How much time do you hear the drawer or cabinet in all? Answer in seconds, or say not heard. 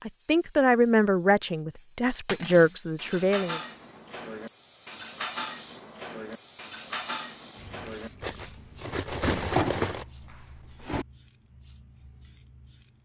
2 s.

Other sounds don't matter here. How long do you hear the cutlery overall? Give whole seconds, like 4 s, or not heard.
8 s.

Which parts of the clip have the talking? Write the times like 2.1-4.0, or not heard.
0.1-3.6.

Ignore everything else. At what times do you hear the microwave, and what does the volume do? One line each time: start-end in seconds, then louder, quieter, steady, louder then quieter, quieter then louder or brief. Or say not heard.
not heard.